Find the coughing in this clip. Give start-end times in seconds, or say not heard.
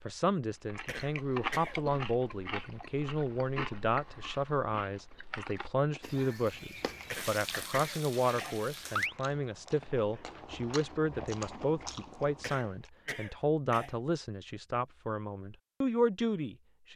0.8-1.8, 7.1-8.6, 12.4-13.9.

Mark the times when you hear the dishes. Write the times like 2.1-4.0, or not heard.
not heard.